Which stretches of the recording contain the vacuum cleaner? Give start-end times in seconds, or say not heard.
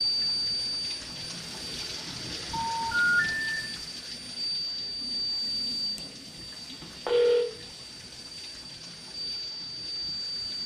0.0-10.6.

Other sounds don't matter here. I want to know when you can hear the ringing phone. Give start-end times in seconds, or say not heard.
2.5-3.6, 6.8-7.5.